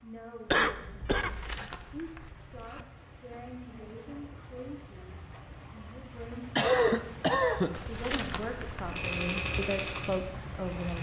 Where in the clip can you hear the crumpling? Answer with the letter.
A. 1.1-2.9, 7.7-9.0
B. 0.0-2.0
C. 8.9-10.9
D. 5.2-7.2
A.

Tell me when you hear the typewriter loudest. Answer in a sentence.
The loudest moment of the typewriter is at 9 seconds.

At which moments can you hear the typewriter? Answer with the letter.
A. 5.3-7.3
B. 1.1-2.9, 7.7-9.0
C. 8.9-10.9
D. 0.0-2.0
C.